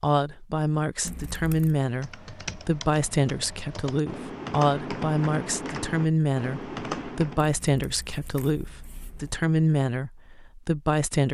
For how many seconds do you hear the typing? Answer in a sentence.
You can hear the typing for 6 seconds altogether.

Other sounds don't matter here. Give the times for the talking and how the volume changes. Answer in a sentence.
You can hear the talking from 0.0 to 11.3 s, at a steady volume.